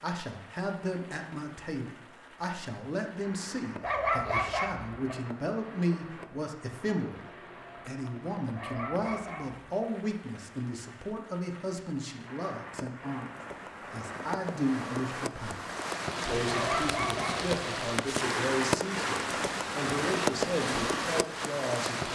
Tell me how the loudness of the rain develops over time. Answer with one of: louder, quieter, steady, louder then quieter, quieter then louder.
louder.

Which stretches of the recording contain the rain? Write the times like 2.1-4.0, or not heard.
0.0-22.1.